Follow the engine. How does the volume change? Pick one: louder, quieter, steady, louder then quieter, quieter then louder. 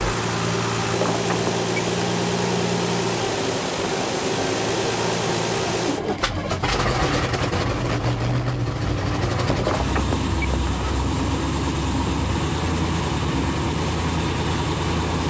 steady.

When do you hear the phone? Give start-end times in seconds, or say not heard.
0.9-2.0, 9.6-10.7.